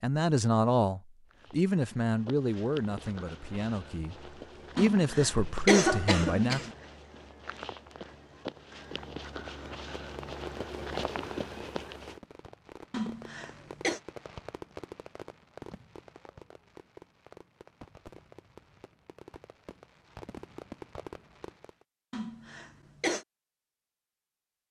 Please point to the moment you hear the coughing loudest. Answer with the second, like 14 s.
6 s.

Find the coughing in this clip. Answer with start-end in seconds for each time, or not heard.
4.8-6.7, 12.9-14.0, 22.1-23.2.